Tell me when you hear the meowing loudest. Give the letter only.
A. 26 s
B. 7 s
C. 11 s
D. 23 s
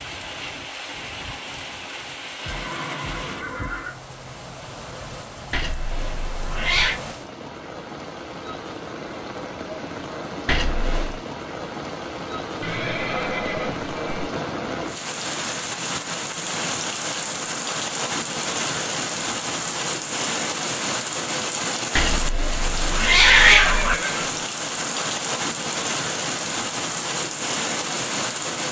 D.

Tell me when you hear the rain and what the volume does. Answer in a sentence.
The rain can be heard from 0.0 to 28.6 s, getting louder.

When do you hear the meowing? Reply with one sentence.
You can hear the meowing from 5.5 to 7.0 s, from 10.4 to 11.2 s and from 21.9 to 23.9 s.